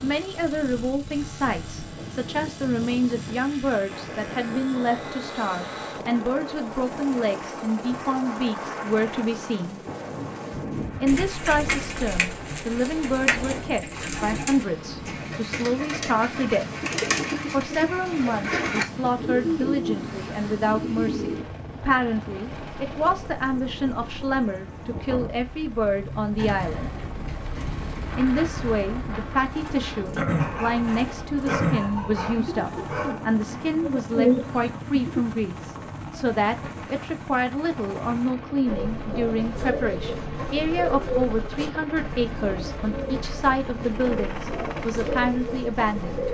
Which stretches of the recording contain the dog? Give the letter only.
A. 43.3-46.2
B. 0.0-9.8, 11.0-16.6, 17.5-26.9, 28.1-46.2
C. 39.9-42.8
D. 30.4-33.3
D.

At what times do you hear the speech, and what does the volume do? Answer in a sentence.
You can hear the speech from 0.0 to 9.8 s, at a steady volume; from 11.0 to 16.6 s, at a steady volume; from 17.5 to 26.9 s, at a steady volume; and from 28.1 to 46.2 s, at a steady volume.